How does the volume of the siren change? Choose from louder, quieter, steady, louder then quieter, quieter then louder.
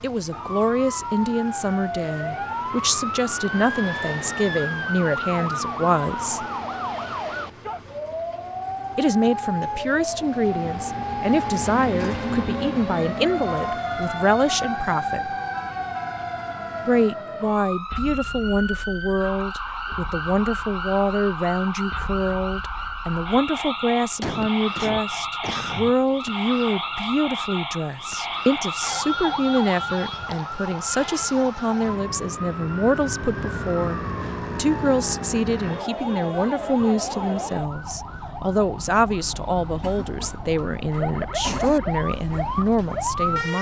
steady.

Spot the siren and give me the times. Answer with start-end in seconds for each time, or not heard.
0.1-43.5.